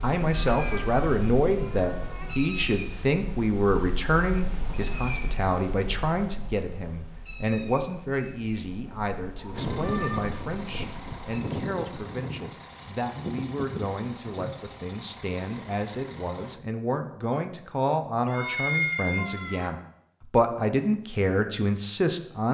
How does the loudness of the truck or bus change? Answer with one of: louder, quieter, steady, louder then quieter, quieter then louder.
quieter.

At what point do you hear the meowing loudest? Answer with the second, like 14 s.
19 s.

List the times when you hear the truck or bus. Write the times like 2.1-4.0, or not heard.
9.5-16.6.